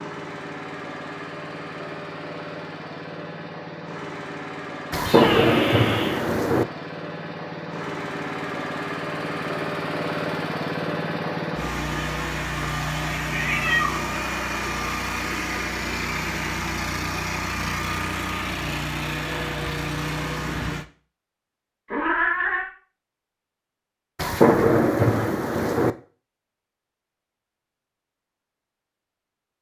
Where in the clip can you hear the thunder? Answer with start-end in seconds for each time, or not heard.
4.9-6.7, 24.1-25.9.